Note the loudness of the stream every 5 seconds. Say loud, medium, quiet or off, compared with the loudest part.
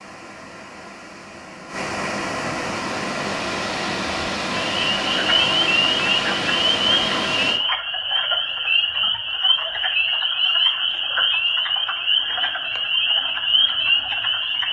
loud, loud, off.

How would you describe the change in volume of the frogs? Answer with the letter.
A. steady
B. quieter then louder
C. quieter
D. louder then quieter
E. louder
A.